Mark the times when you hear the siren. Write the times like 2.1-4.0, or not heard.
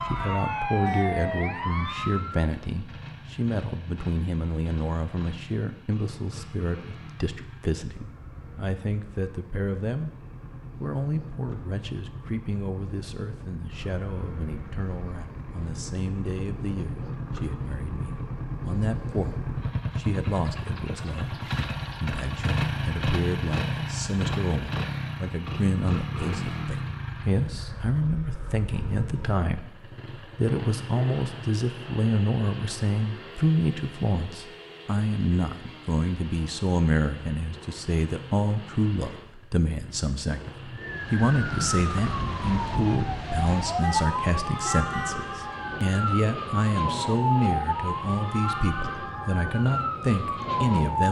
0.0-2.5, 40.8-51.0.